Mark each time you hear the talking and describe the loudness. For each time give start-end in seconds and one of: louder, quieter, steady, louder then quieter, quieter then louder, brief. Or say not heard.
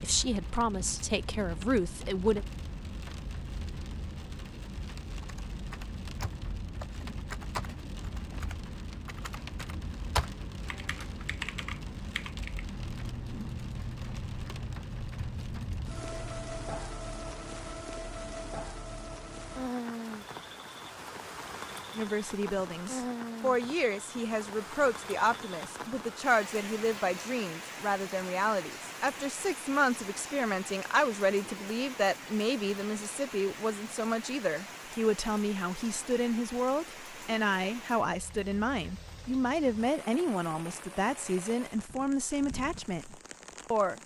0.0-2.5 brief
21.9-44.0 steady.